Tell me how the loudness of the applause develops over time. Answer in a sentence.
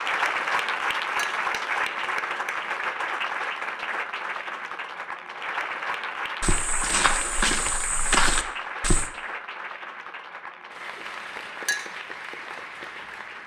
The loudness of the applause goes down.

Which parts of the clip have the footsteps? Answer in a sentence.
The footsteps can be heard from 6.4 to 9.1 s.